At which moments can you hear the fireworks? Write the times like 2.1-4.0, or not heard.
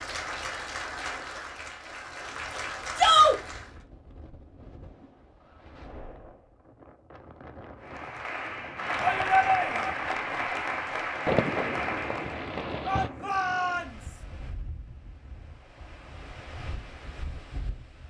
8.9-9.8, 11.2-13.1.